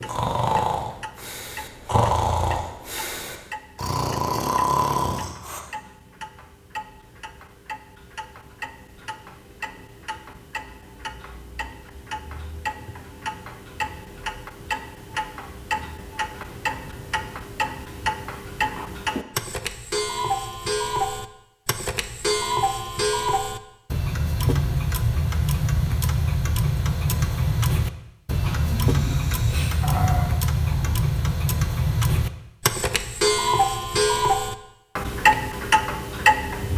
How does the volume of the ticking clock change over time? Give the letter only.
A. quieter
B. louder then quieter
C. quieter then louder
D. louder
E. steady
D.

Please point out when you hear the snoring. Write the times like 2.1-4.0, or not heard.
0.0-5.6, 28.4-31.0.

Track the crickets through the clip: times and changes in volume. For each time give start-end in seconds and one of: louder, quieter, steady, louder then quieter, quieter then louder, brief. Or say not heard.
not heard.